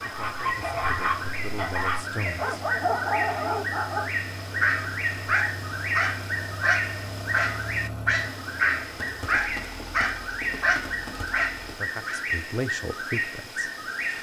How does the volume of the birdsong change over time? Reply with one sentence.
The loudness of the birdsong stays about the same.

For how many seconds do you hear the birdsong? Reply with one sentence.
You can hear the birdsong for 14 seconds altogether.